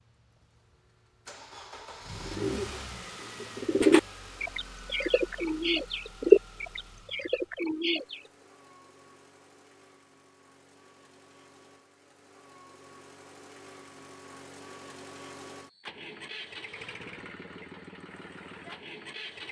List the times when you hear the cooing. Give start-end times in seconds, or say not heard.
2.1-8.2.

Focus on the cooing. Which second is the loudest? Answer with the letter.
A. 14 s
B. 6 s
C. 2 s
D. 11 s
B.